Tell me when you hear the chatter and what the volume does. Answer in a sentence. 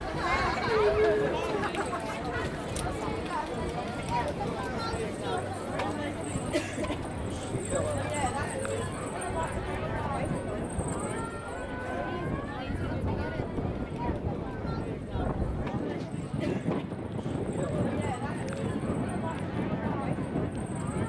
The chatter can be heard from 0.0 to 21.0 s, getting quieter.